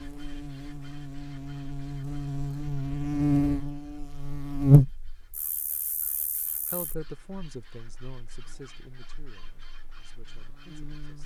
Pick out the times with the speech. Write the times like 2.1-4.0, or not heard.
6.7-11.2.